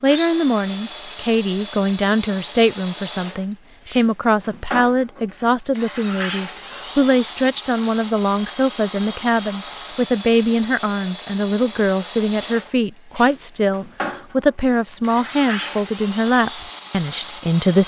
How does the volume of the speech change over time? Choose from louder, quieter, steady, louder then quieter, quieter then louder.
steady.